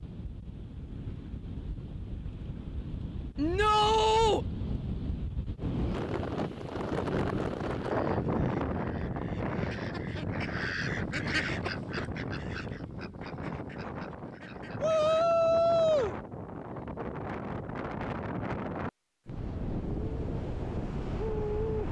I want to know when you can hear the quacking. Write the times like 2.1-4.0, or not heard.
7.8-15.2.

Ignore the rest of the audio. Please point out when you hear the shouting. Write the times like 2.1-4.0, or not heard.
3.4-4.5, 14.8-16.1.